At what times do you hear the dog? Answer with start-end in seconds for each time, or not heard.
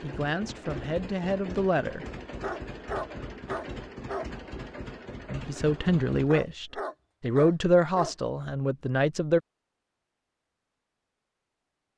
2.4-4.3, 6.2-8.2.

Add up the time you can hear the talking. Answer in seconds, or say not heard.
6 s.